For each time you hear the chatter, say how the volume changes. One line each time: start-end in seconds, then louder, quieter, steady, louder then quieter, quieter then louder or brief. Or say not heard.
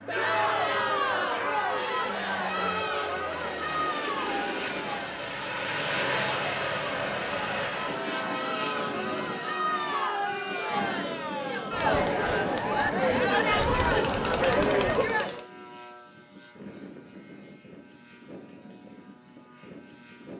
0.1-15.4 quieter then louder.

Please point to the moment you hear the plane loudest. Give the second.
6 s.